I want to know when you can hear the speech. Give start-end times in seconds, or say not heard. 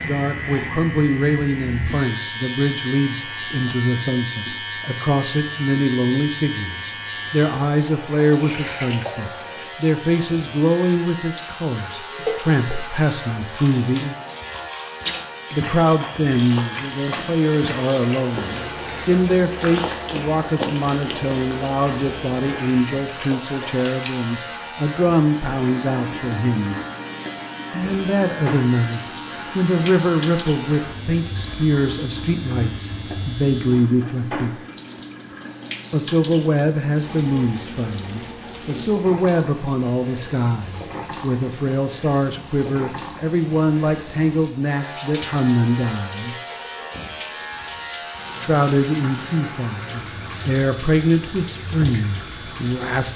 0.1-14.2, 15.5-26.8, 27.7-34.6, 35.9-46.4, 48.4-53.1.